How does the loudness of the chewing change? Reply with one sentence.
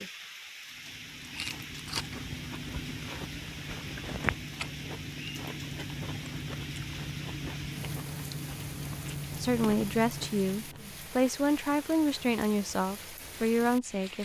The loudness of the chewing stays about the same.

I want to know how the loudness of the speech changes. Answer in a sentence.
The loudness of the speech stays about the same.